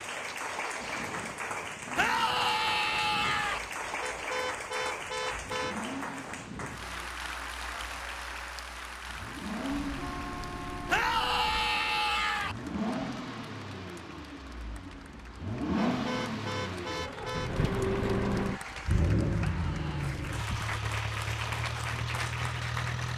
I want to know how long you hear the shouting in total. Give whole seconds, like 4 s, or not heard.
4 s.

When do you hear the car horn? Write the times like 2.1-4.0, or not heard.
4.0-5.8, 9.8-11.7, 15.8-17.6.